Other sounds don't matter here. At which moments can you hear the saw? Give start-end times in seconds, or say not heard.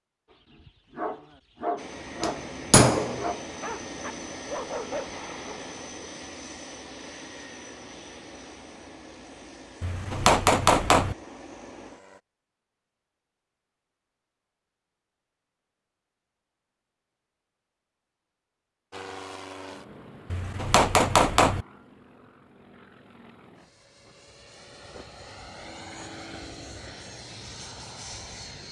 not heard.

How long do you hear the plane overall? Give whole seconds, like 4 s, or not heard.
20 s.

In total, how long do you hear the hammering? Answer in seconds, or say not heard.
4 s.